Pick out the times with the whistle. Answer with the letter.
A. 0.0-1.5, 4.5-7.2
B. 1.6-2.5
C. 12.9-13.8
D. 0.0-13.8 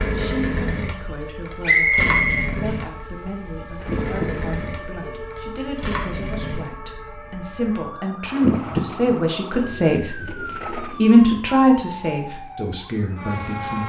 B.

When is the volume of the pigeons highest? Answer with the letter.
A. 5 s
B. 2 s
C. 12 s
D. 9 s
D.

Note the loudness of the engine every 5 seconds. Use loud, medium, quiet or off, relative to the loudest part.
loud, loud, off.